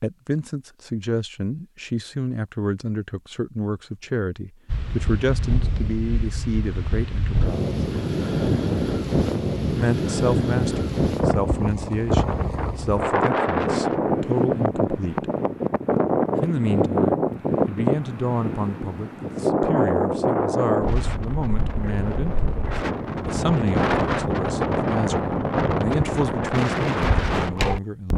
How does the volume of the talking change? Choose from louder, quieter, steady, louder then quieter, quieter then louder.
steady.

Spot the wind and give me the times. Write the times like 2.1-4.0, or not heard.
4.7-28.1.